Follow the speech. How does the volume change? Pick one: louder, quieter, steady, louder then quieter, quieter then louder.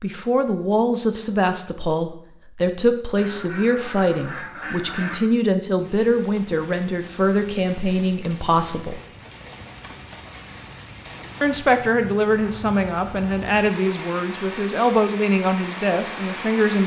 steady.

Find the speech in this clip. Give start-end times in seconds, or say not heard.
0.0-9.0, 11.4-16.8.